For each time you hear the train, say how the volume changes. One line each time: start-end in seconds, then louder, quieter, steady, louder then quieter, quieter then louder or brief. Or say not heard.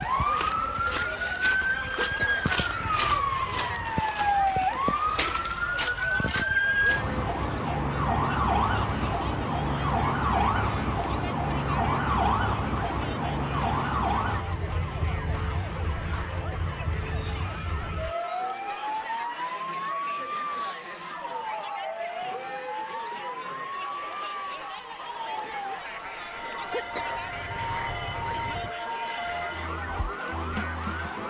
not heard.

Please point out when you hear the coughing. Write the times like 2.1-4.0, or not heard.
1.9-4.0, 26.7-28.8.